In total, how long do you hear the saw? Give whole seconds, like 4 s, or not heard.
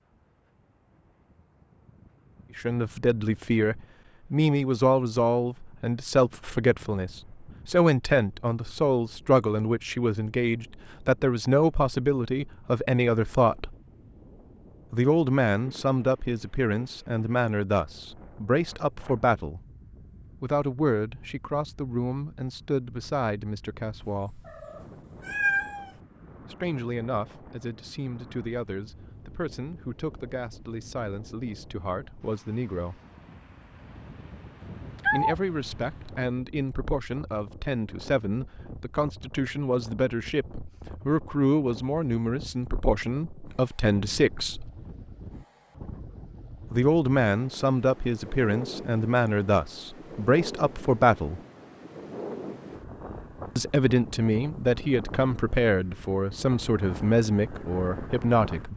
not heard.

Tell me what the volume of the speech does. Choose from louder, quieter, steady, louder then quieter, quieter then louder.
quieter then louder.